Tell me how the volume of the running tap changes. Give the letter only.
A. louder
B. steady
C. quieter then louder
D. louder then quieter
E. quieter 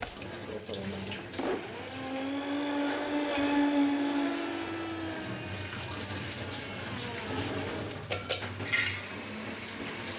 C.